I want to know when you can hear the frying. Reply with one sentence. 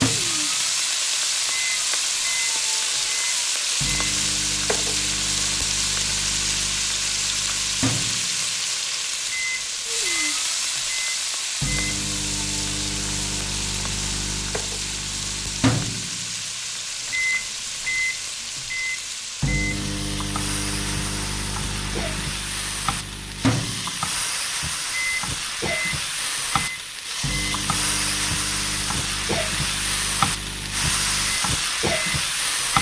You can hear the frying from 0.0 to 32.7 s.